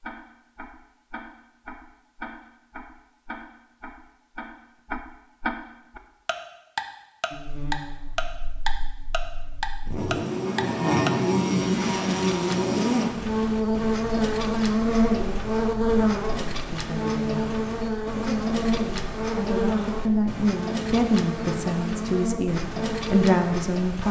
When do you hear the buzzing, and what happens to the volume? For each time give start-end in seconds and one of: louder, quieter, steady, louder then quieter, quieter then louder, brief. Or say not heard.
7.3-24.0 louder then quieter.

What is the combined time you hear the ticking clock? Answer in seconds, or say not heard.
24 s.